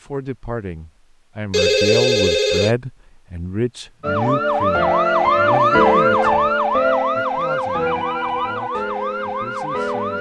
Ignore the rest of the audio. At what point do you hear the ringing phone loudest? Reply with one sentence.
The volume of the ringing phone peaks at 2 seconds.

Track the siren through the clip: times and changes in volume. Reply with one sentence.
You can hear the siren from 4.0 to 10.1 s, getting quieter.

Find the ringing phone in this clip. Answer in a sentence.
The ringing phone can be heard from 1.5 to 2.8 s and from 7.4 to 8.6 s.